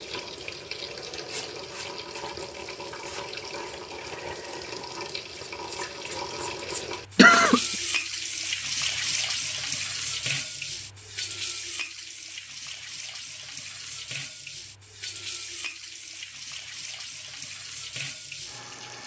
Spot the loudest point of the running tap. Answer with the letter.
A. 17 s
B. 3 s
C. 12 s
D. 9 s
D.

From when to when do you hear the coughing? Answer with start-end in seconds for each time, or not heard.
7.2-7.6.